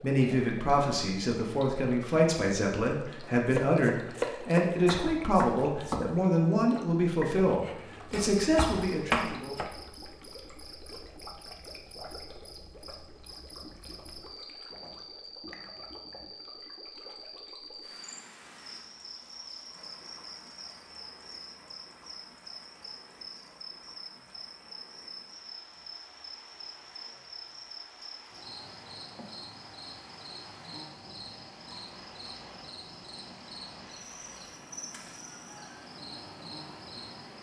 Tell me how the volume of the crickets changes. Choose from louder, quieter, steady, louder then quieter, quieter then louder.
steady.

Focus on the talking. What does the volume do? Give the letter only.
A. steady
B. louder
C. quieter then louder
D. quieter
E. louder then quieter
A.